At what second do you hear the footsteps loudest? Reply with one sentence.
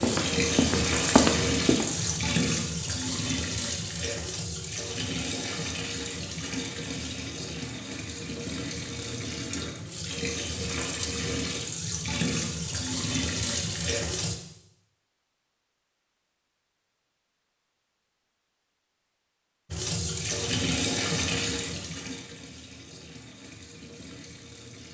The volume of the footsteps peaks at 1 second.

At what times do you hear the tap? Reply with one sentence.
You can hear the tap from 0.0 to 14.3 s and from 19.7 to 24.9 s.